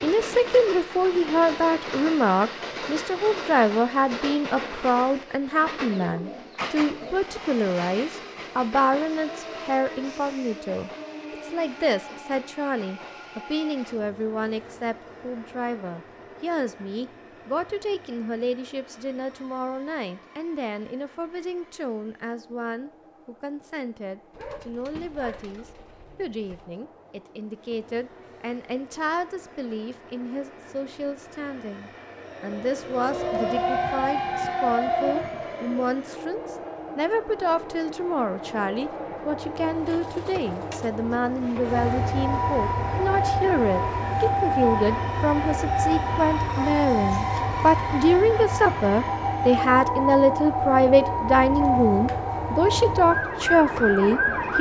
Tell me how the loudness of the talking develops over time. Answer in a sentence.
The loudness of the talking goes down, then up.